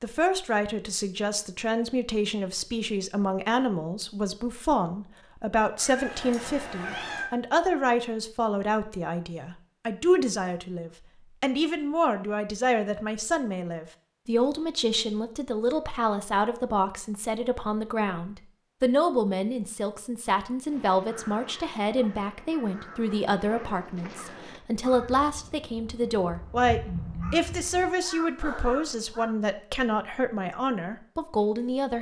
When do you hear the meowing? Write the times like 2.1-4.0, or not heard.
5.8-7.3.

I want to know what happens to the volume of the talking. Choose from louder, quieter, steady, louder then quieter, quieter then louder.
steady.